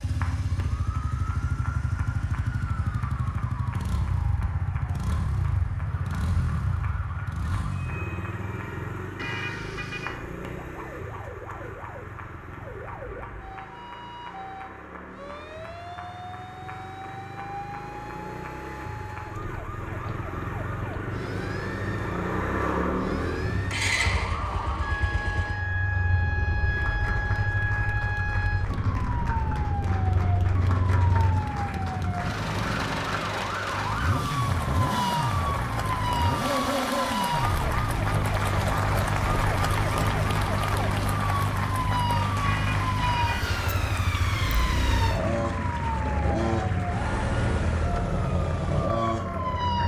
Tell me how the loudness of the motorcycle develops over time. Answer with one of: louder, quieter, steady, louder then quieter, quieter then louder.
quieter then louder.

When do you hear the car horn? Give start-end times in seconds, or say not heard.
9.2-10.2, 42.4-43.4.